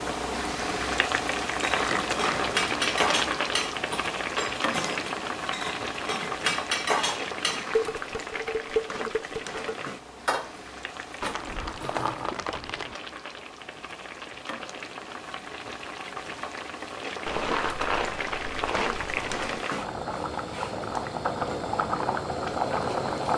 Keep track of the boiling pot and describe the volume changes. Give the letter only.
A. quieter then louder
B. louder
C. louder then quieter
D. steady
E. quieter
A.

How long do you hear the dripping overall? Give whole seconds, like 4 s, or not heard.
not heard.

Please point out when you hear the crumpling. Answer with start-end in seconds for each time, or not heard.
1.8-2.5, 11.2-12.9, 17.2-19.6.